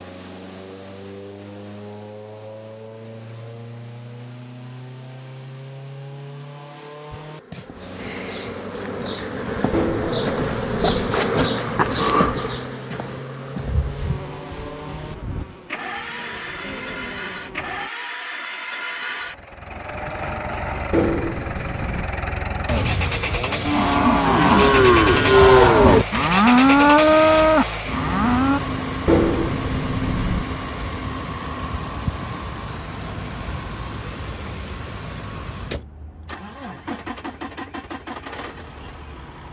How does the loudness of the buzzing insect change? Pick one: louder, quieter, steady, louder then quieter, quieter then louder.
louder then quieter.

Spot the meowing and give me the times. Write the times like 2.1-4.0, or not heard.
9.7-10.9, 20.9-22.1, 29.1-30.4.